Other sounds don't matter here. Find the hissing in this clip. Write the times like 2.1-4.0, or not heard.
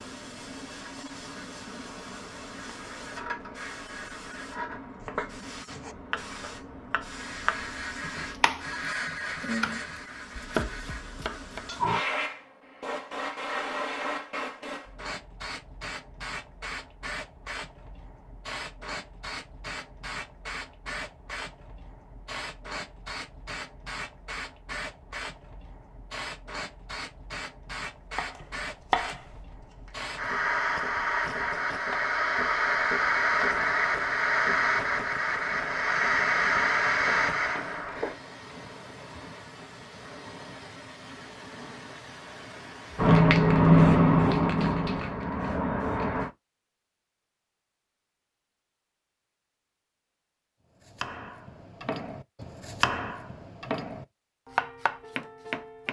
0.0-46.3.